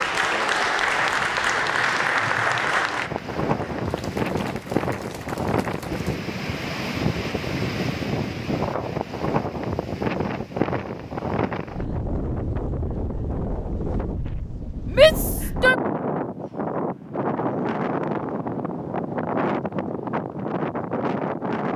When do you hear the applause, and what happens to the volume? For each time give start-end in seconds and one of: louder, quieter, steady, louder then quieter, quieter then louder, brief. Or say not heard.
0.0-6.1 quieter.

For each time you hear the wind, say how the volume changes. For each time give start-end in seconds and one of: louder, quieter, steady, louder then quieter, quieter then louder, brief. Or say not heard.
0.0-21.7 steady.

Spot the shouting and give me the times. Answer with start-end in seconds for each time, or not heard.
14.9-15.8.